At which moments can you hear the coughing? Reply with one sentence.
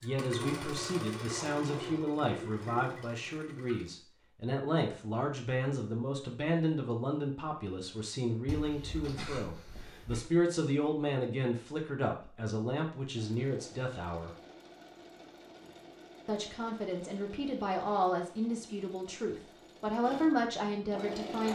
The coughing can be heard from 9.2 to 10.3 s.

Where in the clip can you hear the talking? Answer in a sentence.
You can hear the talking from 0.0 to 14.3 s and from 16.2 to 21.5 s.